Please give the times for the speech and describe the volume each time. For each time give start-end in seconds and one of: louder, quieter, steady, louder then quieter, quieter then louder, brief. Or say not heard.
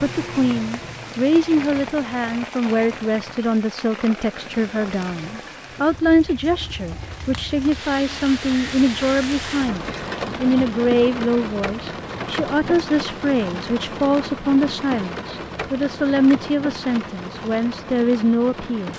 0.0-18.9 steady.